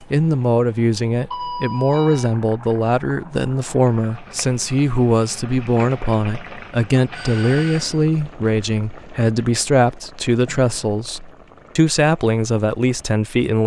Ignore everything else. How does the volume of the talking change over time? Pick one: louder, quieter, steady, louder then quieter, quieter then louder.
steady.